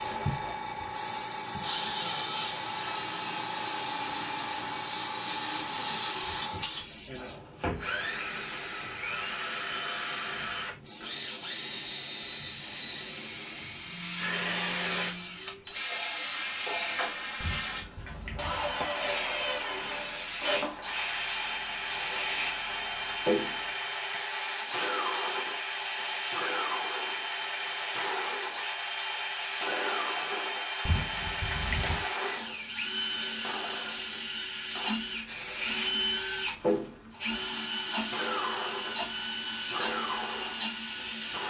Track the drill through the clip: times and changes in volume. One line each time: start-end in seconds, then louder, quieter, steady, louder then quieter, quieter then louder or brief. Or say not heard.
0.0-41.4 steady.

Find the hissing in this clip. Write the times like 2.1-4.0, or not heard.
0.0-41.4.